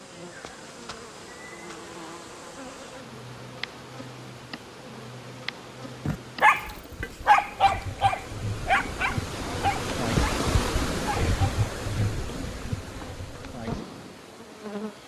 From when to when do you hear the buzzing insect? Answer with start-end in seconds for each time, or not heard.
0.0-15.0.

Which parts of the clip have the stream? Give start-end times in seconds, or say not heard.
0.0-15.0.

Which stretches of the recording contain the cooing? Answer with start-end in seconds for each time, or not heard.
not heard.